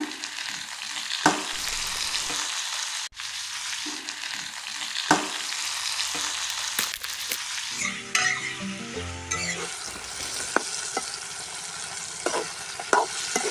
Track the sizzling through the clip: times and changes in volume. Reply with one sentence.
The sizzling can be heard from 0.0 to 13.4 s, at a steady volume.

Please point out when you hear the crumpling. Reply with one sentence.
You can hear the crumpling from 1.5 to 2.4 s, from 5.7 to 7.4 s and from 9.8 to 10.6 s.